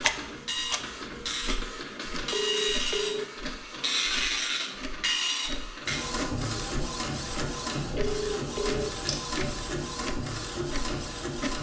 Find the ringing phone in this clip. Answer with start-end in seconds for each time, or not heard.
2.3-3.2, 8.0-8.9.